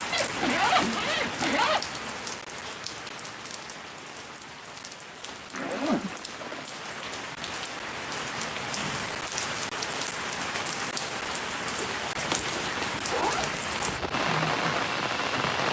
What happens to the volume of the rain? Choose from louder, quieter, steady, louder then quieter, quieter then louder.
quieter then louder.